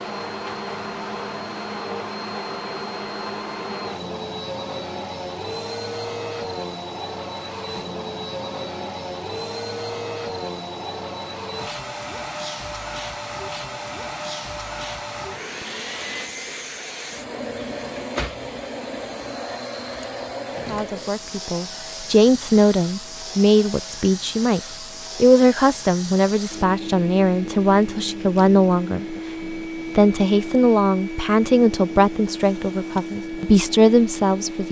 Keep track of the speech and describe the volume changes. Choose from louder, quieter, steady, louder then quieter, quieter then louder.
steady.